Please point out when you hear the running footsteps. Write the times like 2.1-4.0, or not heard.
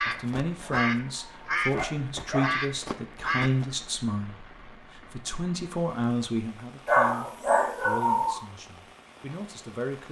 not heard.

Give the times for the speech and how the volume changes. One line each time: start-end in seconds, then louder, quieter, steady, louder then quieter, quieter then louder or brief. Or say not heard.
0.1-10.0 quieter.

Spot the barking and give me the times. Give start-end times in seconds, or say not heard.
0.0-2.5, 6.8-8.4.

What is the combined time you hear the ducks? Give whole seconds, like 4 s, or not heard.
4 s.